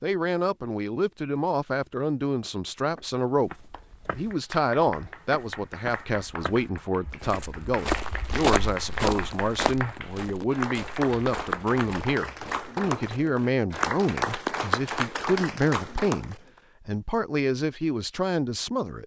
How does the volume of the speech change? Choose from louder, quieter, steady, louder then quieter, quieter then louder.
steady.